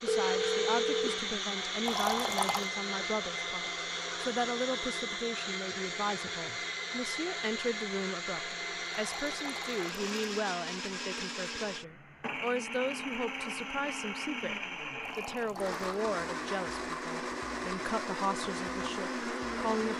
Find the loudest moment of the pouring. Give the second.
2 s.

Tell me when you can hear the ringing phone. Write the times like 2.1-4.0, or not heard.
0.1-1.3.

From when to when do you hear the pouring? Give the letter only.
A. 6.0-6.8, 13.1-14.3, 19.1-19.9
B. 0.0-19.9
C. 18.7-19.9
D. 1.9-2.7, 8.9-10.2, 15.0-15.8
D.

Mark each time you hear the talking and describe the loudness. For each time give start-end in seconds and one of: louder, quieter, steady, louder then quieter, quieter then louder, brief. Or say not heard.
0.0-19.9 steady.